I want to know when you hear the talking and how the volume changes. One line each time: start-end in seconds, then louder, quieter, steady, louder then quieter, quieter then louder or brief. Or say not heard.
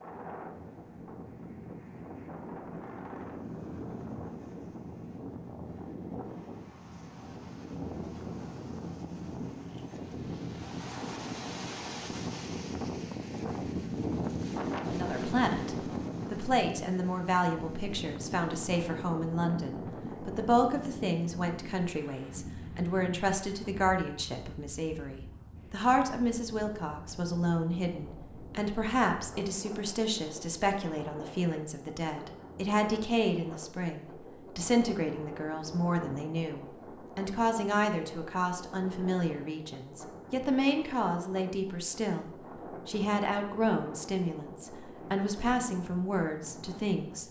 14.8-47.2 steady.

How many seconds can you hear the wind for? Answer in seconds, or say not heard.
47 s.